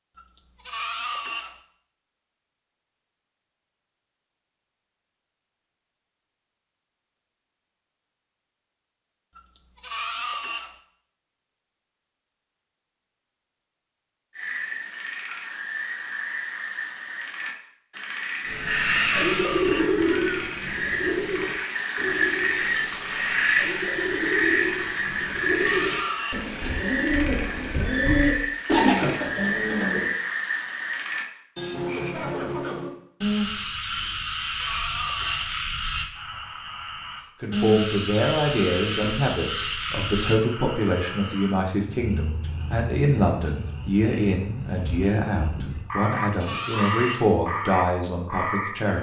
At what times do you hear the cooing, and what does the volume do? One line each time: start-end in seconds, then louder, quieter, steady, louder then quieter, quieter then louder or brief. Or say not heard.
18.4-30.1 quieter then louder.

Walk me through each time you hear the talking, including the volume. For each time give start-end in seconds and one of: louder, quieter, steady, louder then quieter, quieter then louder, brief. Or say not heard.
37.4-48.9 steady.